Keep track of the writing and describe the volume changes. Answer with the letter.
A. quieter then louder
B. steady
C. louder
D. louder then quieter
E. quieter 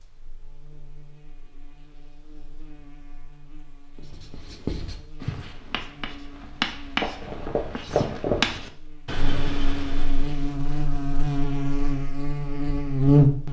D.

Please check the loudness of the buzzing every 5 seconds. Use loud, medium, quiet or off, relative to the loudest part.
quiet, quiet, loud.